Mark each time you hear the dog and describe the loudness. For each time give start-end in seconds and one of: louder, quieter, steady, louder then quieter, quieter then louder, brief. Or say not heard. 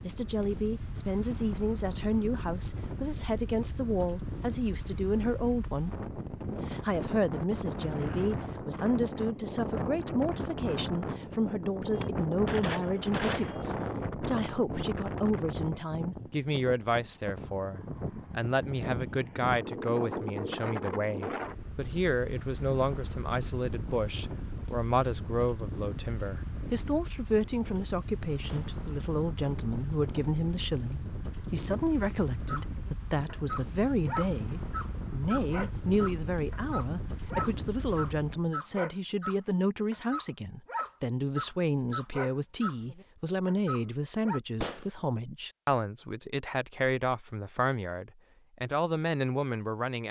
32.5-44.4 steady.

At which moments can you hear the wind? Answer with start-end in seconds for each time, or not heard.
0.0-38.5.